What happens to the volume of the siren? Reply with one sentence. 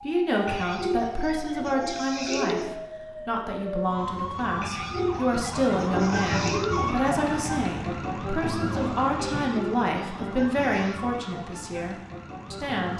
The volume of the siren goes up, then down.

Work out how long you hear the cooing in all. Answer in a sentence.
You can hear the cooing for 6 seconds altogether.